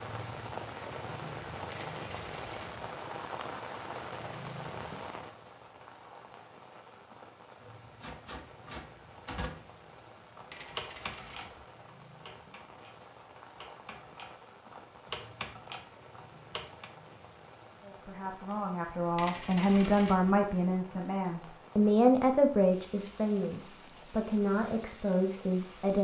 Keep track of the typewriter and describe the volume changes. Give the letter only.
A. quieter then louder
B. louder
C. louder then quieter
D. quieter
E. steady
A.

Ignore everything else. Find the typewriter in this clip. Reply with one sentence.
You can hear the typewriter from 8.0 to 16.9 s.